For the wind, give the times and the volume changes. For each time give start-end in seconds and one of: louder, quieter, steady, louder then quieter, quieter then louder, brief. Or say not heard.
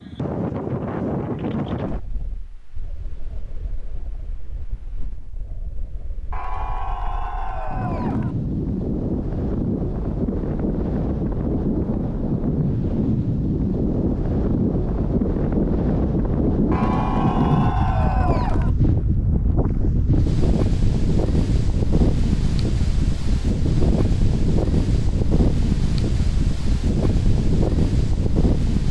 0.0-28.8 louder.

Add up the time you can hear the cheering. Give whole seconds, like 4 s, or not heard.
4 s.